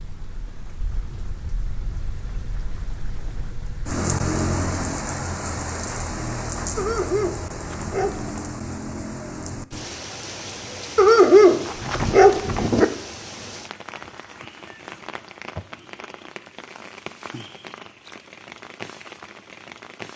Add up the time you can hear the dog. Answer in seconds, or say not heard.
4 s.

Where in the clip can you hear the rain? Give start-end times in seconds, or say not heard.
0.0-20.1.